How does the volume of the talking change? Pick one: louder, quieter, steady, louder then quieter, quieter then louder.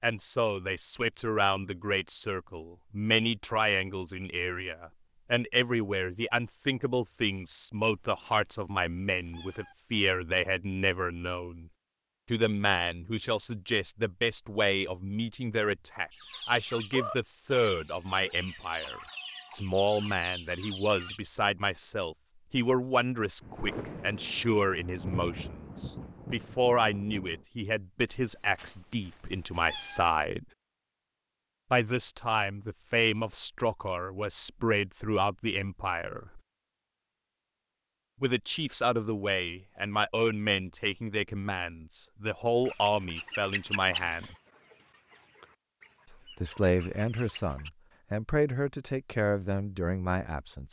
steady.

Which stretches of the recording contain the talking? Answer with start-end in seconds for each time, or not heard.
0.0-11.7, 12.3-30.4, 31.7-36.4, 38.2-44.4, 46.1-50.6.